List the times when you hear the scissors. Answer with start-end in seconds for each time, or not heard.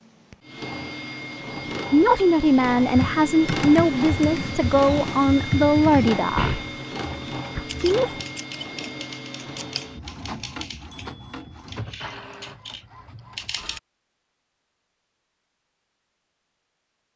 7.7-9.8.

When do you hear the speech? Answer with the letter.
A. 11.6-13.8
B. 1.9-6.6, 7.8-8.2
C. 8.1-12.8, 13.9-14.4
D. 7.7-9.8
B.